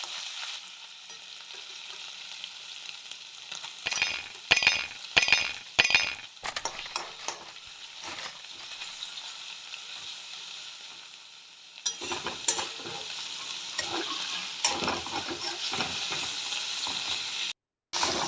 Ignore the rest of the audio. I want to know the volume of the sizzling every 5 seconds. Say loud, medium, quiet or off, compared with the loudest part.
medium, medium, loud, loud.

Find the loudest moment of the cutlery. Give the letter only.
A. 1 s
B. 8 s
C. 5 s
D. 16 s
C.